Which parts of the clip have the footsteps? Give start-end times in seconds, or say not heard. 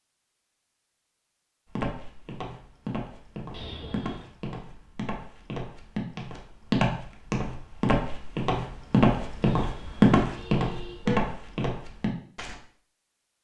1.7-12.6.